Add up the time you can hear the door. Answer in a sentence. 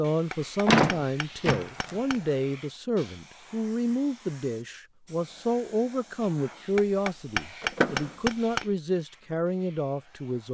You can hear the door for 2 seconds altogether.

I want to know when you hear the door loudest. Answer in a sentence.
The loudest moment of the door is at 1 second.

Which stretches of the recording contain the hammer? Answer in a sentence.
You can hear the hammer from 0.3 to 2.3 s and from 6.8 to 8.8 s.